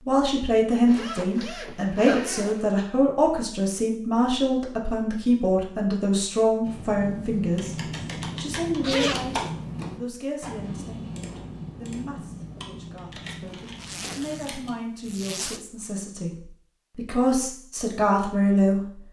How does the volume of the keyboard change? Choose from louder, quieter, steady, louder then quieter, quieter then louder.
quieter.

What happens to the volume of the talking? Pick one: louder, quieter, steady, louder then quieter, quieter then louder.
quieter then louder.